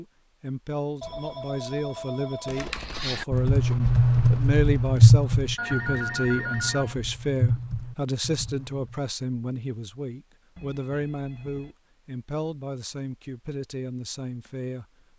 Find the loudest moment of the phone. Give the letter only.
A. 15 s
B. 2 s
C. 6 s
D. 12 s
C.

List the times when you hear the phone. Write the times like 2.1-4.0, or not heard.
1.0-3.0, 5.5-7.0, 10.6-11.8.